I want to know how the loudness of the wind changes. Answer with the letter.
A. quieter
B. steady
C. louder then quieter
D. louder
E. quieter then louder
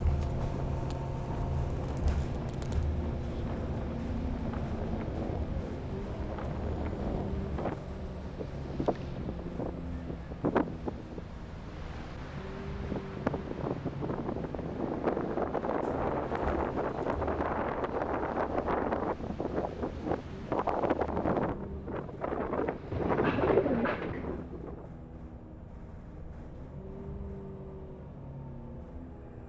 D.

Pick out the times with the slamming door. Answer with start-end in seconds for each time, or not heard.
not heard.